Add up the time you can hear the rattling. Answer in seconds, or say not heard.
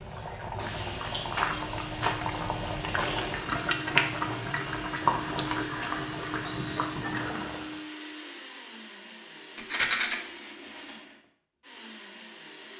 2 s.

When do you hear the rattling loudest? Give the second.
10 s.